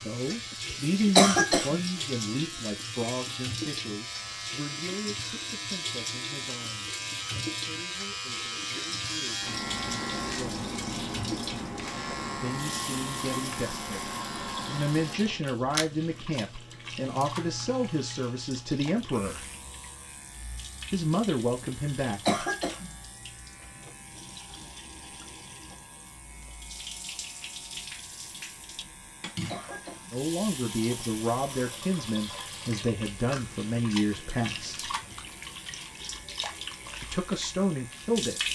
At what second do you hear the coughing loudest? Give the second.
1 s.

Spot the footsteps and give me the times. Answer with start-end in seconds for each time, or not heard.
not heard.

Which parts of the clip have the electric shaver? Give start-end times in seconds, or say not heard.
0.0-38.5.